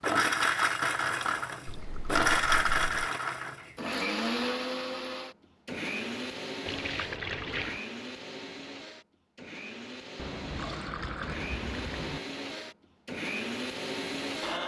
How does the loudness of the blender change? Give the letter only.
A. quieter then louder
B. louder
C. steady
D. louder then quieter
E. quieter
A.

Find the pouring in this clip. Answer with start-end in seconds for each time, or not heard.
1.6-3.0, 6.7-7.8, 10.2-12.2.